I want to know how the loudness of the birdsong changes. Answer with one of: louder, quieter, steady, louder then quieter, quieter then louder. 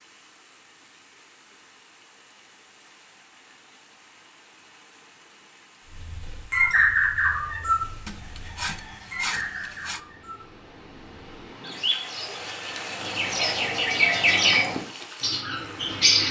quieter then louder.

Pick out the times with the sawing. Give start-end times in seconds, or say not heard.
8.1-10.0.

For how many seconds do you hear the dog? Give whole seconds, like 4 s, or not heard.
not heard.